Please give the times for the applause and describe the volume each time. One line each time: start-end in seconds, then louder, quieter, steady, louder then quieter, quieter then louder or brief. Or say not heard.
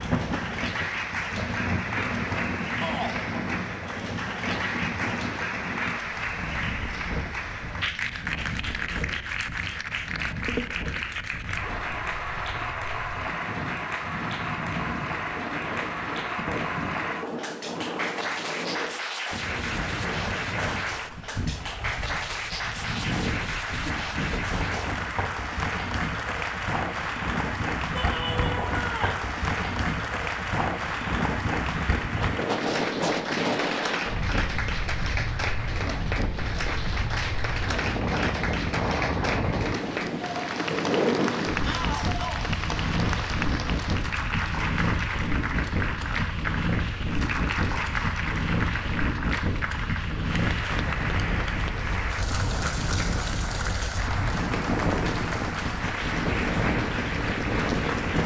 0.0-58.2 steady.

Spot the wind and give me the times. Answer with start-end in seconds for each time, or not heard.
0.0-58.2.